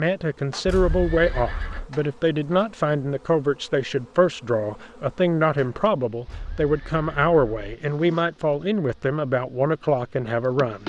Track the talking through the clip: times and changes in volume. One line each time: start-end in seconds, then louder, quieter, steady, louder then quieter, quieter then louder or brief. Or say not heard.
0.0-10.8 steady.